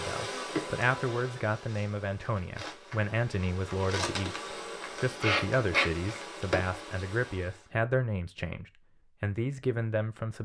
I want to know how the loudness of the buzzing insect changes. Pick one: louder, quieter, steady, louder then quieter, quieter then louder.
quieter then louder.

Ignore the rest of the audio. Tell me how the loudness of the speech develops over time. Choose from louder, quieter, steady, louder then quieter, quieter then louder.
steady.